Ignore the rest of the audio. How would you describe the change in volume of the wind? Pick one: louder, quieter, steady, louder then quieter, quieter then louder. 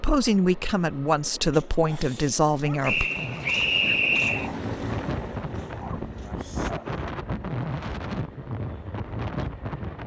louder.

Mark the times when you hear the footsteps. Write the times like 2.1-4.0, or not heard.
not heard.